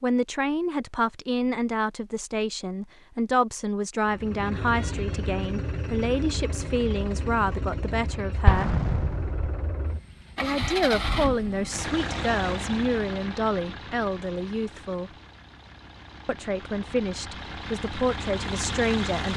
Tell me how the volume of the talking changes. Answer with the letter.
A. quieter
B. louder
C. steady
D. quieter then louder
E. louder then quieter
C.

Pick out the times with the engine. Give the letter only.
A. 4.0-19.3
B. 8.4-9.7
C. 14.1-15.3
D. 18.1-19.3
A.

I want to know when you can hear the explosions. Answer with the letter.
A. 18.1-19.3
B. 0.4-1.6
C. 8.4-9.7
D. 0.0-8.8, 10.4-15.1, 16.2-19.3
C.